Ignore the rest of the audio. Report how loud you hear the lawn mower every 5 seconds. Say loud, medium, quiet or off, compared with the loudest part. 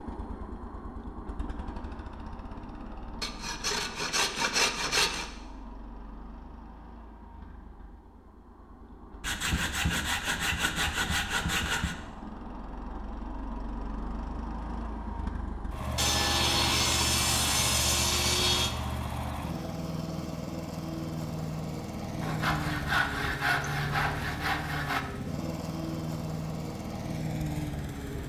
medium, quiet, medium, loud, loud, loud.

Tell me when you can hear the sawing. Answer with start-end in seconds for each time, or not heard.
3.2-5.3, 9.2-11.9, 15.9-18.7, 22.2-25.1.